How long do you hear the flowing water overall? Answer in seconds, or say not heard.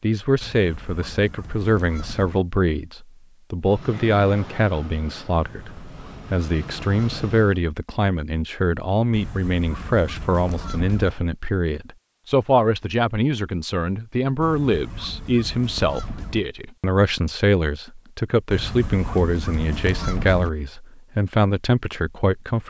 not heard.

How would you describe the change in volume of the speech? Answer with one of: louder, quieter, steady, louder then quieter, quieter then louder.
steady.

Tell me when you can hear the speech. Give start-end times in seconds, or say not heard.
0.0-22.6.